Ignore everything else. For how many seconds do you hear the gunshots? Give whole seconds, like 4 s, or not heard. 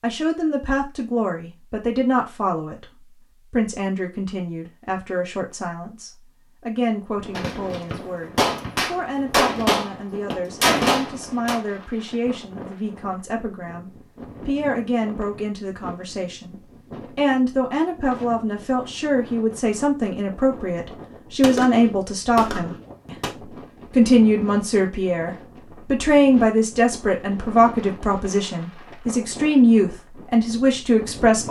6 s.